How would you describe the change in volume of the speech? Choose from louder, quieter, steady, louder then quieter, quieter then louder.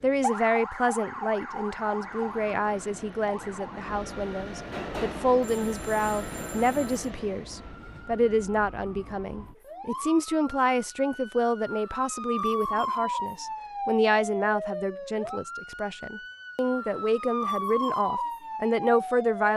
steady.